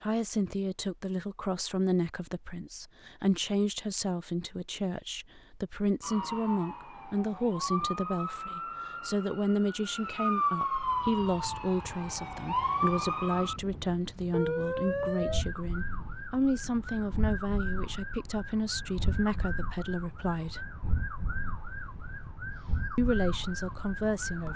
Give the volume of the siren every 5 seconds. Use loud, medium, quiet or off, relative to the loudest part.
off, medium, loud, medium, medium.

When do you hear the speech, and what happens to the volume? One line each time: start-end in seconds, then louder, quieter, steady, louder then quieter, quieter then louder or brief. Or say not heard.
0.0-20.7 steady
22.9-24.5 brief.